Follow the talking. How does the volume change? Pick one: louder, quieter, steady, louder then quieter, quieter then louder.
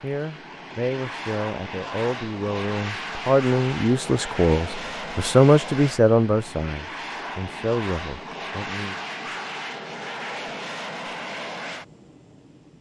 louder then quieter.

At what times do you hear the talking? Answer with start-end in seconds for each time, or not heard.
0.0-8.9.